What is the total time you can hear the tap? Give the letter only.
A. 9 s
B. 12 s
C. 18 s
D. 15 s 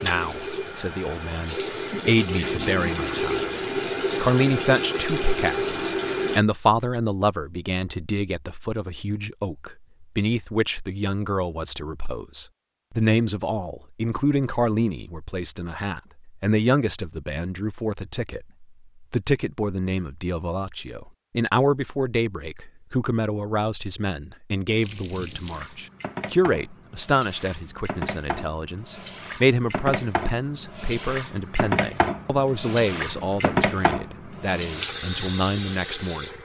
C.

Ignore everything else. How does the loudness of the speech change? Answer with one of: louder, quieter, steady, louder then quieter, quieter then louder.
steady.